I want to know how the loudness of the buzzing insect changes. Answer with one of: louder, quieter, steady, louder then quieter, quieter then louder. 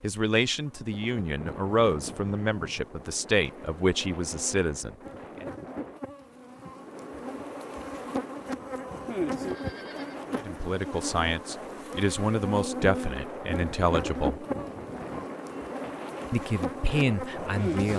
louder.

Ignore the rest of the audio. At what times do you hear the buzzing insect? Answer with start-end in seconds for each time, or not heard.
0.0-17.9.